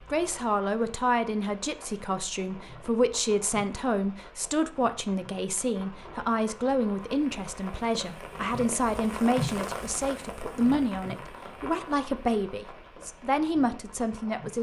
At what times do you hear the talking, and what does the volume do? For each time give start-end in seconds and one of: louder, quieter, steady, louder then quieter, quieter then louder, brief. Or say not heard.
0.1-14.5 steady.